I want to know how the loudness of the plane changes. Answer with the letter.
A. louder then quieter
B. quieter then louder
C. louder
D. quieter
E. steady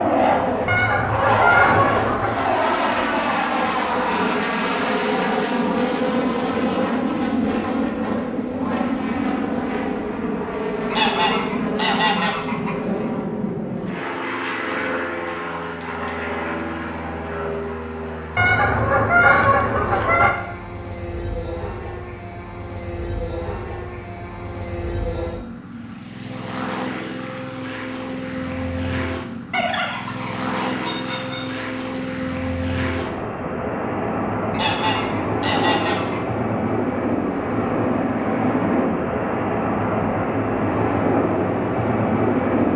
B.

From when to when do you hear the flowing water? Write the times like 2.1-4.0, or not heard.
not heard.